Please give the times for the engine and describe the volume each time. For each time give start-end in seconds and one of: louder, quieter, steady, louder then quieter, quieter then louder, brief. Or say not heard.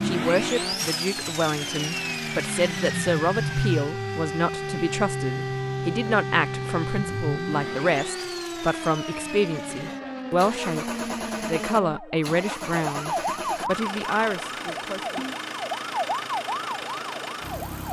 0.0-17.8 quieter.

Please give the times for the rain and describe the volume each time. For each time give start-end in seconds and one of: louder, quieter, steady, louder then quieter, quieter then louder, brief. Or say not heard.
not heard.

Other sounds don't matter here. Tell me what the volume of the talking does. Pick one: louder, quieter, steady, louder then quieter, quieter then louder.
steady.